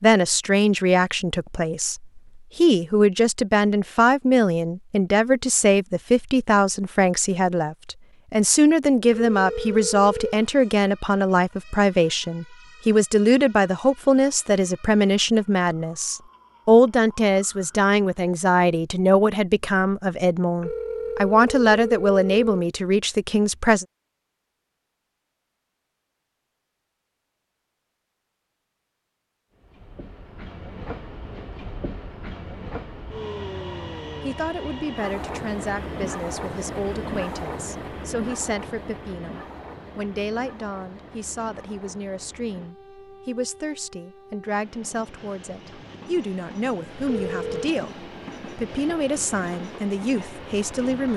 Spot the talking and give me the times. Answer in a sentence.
You can hear the talking from 0.0 to 23.9 s and from 34.2 to 51.1 s.